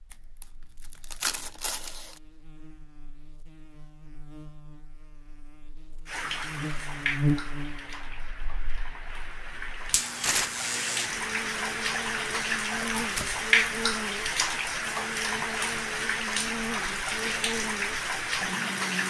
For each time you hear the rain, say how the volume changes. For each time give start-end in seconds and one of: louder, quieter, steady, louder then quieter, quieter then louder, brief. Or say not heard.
6.0-19.0 louder.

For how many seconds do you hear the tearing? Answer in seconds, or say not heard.
3 s.